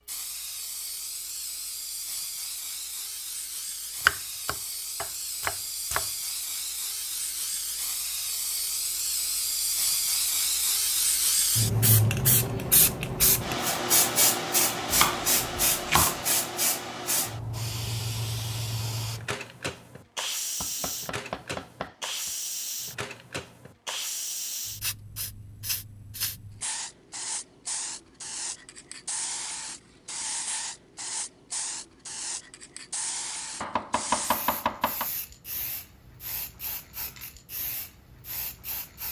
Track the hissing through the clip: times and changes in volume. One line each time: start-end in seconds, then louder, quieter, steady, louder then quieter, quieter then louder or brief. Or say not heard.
0.1-39.0 louder then quieter.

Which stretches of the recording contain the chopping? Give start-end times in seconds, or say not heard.
4.0-6.0, 14.9-16.1, 20.6-22.3, 33.6-35.1.